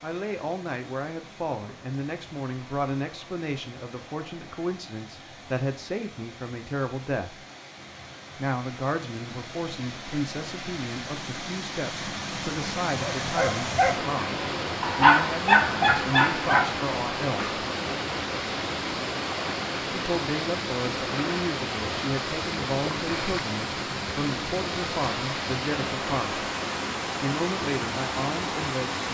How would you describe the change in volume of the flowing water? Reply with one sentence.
The volume of the flowing water goes up.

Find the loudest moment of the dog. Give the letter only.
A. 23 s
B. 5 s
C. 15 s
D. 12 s
C.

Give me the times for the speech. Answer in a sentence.
The speech can be heard from 0.0 to 7.3 s, from 8.3 to 17.6 s, from 19.9 to 26.4 s and from 27.2 to 29.1 s.